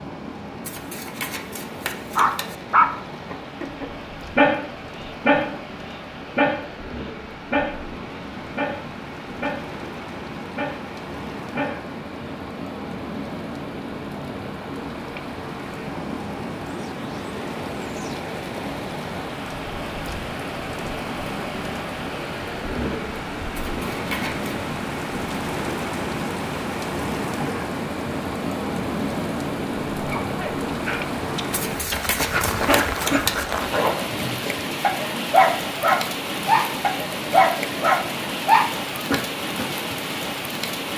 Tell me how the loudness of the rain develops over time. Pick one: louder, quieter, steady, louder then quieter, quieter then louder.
louder.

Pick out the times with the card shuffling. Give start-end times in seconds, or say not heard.
0.7-2.5, 23.6-24.6, 31.5-33.5.